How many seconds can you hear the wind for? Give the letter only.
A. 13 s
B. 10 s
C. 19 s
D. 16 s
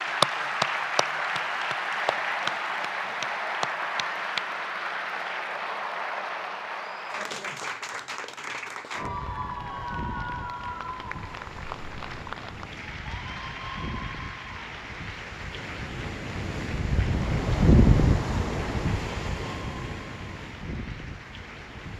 A.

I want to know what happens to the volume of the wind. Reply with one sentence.
The loudness of the wind goes up, then down.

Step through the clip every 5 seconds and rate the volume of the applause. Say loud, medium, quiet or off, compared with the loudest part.
loud, medium, medium, quiet, quiet.